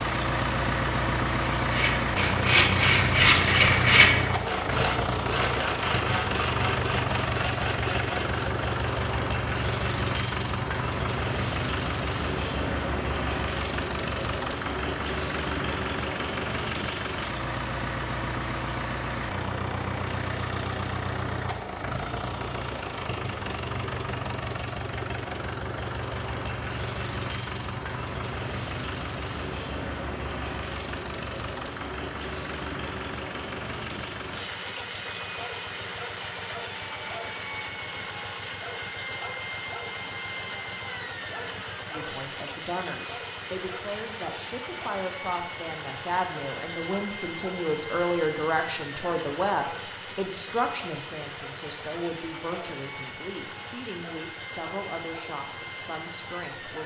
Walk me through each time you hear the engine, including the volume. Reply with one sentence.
The engine can be heard from 0.0 to 56.8 s, getting quieter.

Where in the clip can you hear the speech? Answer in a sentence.
The speech can be heard from 41.9 to 56.8 s.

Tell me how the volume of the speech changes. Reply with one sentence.
The volume of the speech goes up, then down.